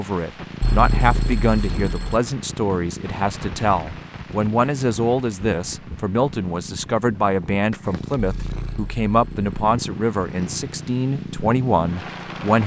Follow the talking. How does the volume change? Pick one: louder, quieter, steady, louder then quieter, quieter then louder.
steady.